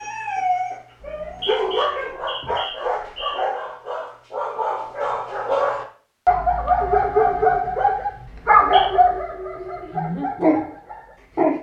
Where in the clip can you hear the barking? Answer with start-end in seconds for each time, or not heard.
0.0-11.5.